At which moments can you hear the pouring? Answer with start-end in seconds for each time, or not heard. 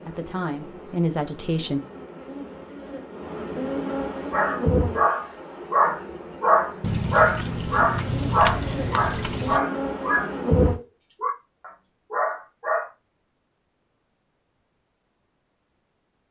6.8-9.6.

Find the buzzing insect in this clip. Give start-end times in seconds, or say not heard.
0.0-10.8.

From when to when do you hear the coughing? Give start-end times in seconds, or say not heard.
not heard.